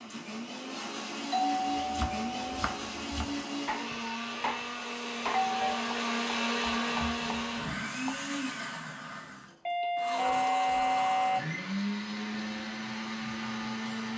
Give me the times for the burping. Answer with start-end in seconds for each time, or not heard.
not heard.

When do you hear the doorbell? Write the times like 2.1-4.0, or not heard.
1.3-2.6, 5.3-5.9, 9.7-11.4.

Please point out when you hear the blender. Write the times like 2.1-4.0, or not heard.
0.0-14.1.